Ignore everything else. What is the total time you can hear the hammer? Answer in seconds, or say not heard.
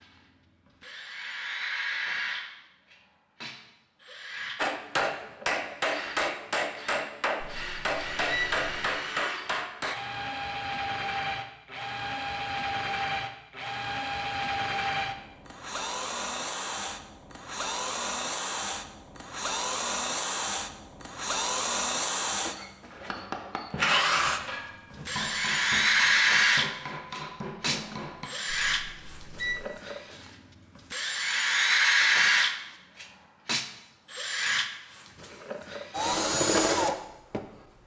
11 s.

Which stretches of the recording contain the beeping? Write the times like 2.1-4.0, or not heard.
7.4-9.0, 28.4-29.8.